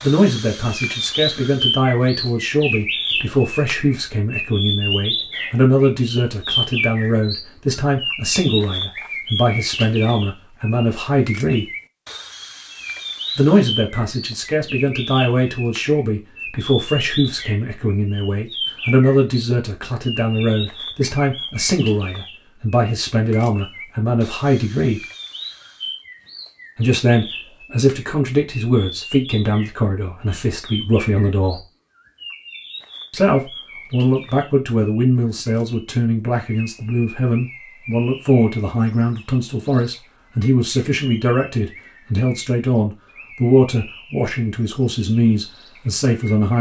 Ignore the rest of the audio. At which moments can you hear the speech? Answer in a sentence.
The speech can be heard from 0.0 to 11.7 s, from 13.3 to 25.1 s, from 26.8 to 31.6 s and from 33.1 to 46.5 s.